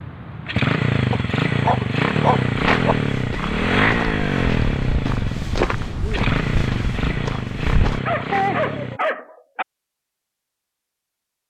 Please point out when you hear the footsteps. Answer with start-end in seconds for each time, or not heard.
2.5-8.2.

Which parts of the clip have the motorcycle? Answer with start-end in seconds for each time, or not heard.
0.0-9.0.